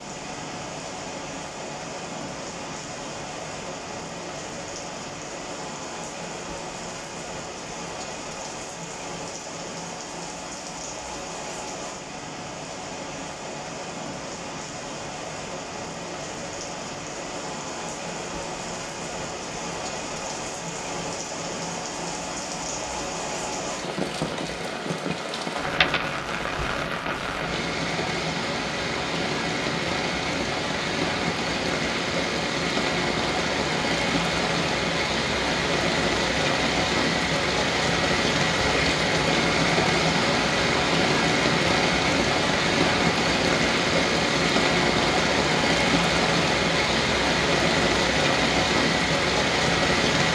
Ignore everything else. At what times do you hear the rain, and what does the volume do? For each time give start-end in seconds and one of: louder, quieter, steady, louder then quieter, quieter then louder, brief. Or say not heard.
0.0-50.3 louder.